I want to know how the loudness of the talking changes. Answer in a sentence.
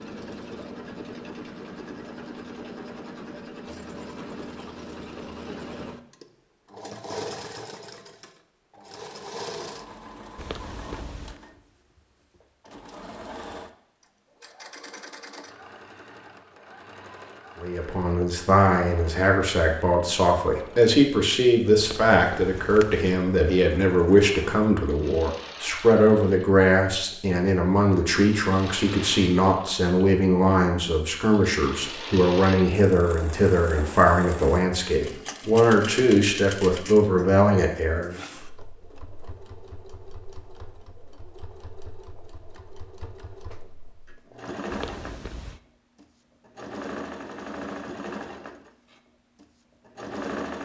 The loudness of the talking stays about the same.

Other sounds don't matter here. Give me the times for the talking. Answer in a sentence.
The talking can be heard from 17.6 to 38.1 s.